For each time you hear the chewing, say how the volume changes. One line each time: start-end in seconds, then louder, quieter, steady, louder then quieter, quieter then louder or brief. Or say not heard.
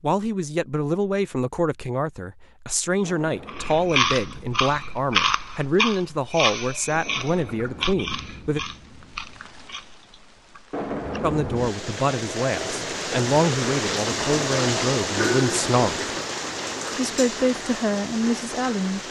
3.5-11.2 quieter.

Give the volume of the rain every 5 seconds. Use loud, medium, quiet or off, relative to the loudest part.
quiet, quiet, loud, loud.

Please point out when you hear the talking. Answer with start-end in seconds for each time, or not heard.
0.0-8.6, 11.2-16.1, 16.9-19.0.